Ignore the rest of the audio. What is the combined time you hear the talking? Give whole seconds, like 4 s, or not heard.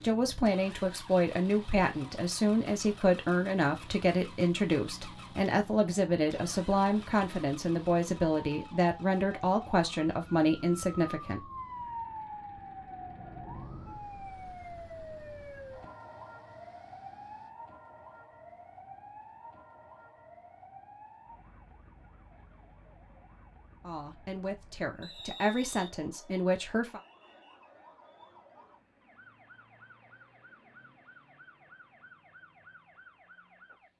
15 s.